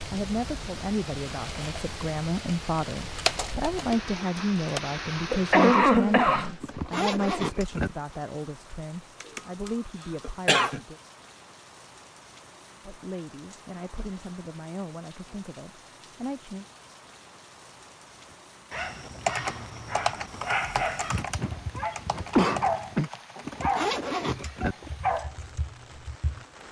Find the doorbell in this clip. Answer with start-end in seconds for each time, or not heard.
not heard.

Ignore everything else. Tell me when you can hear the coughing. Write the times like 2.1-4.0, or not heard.
5.3-6.5, 9.2-10.8, 21.1-23.1.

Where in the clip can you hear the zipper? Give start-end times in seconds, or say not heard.
6.6-7.9, 23.4-24.8.